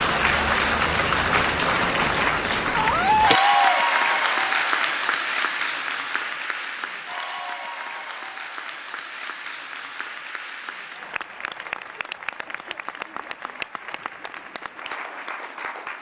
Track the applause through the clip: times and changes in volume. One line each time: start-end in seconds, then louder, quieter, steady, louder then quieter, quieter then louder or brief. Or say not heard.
0.0-15.9 quieter.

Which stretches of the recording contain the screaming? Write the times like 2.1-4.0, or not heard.
2.7-3.7.